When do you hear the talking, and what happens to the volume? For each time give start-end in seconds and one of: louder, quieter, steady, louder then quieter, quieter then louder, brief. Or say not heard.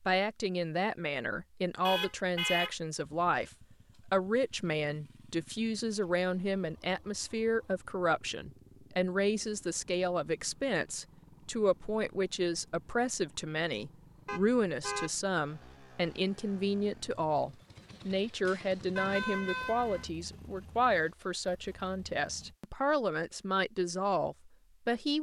0.0-25.1 steady.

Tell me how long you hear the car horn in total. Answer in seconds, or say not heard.
3 s.